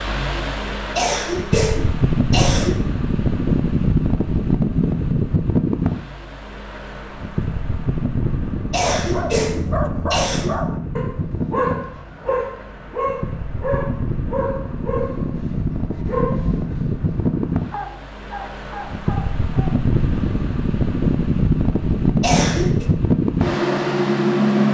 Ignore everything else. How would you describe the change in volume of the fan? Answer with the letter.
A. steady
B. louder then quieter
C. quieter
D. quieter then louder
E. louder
D.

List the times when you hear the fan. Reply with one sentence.
You can hear the fan from 0.0 to 24.7 s.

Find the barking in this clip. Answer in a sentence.
The barking can be heard from 8.8 to 19.7 s.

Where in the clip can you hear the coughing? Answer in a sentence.
You can hear the coughing from 0.9 to 2.8 s, from 8.7 to 10.6 s and from 22.2 to 22.9 s.